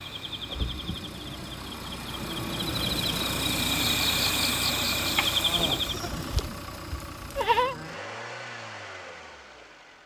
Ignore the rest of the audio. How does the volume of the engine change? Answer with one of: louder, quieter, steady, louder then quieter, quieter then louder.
louder then quieter.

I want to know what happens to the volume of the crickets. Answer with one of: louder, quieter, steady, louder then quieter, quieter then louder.
louder.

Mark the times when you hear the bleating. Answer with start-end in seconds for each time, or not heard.
5.2-7.8.